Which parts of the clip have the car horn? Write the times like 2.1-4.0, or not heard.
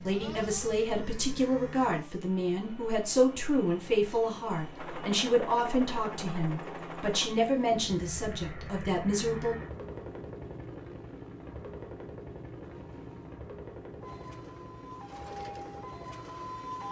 12.6-13.4.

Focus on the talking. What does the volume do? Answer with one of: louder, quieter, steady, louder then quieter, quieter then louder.
steady.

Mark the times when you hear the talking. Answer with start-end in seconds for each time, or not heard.
0.0-9.6.